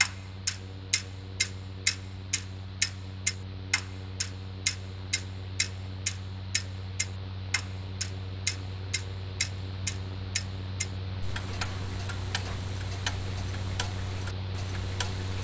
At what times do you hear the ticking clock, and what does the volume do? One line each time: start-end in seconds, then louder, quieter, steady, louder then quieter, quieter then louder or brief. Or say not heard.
0.0-15.3 quieter.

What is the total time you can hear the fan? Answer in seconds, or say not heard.
15 s.